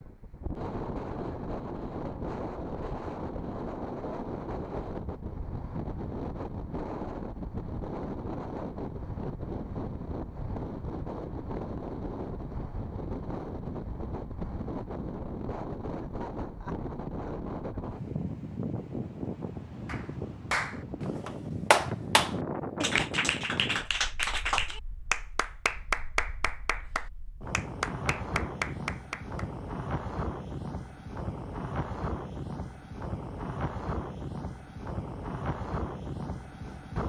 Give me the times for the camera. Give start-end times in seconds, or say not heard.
not heard.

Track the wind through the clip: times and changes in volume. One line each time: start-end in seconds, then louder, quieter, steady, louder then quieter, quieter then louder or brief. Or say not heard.
0.0-37.0 steady.